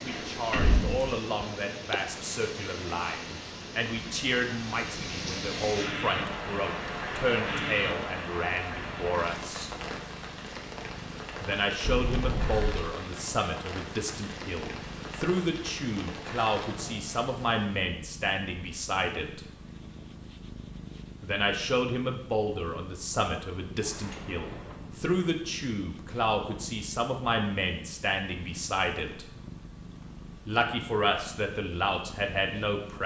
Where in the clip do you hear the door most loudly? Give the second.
1 s.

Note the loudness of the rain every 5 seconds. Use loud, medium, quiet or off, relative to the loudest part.
medium, loud, medium, medium, off, off, off.